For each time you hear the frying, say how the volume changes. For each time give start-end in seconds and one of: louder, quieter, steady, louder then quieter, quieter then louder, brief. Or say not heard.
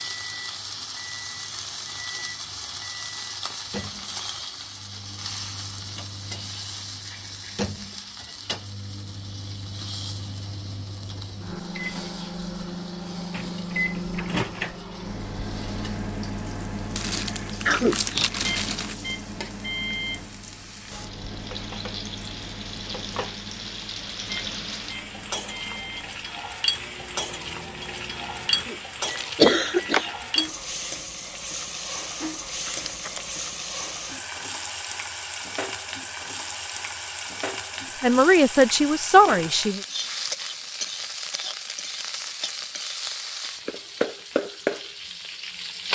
0.0-45.9 quieter then louder.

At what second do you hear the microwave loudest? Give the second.
14 s.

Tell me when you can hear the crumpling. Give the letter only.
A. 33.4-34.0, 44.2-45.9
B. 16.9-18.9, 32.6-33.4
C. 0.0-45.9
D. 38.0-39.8
B.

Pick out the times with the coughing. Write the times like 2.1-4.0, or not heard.
17.6-18.3, 28.5-30.1.